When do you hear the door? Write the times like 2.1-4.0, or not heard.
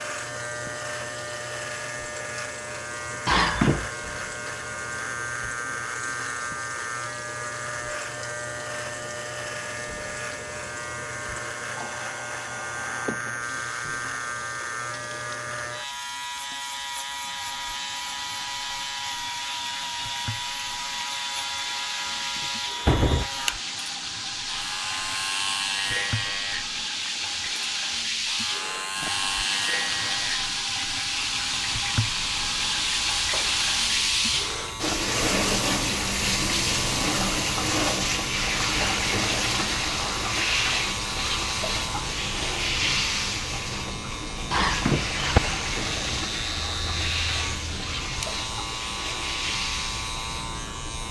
3.2-3.9, 22.1-23.3, 44.5-45.4.